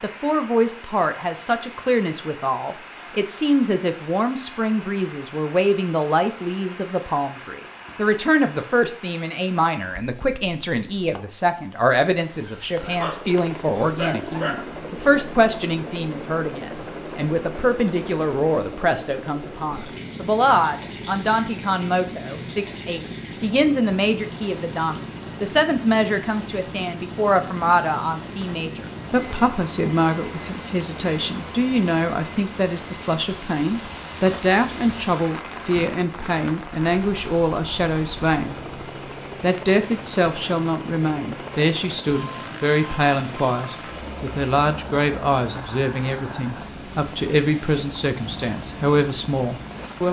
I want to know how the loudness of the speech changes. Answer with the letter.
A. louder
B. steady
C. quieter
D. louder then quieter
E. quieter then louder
B.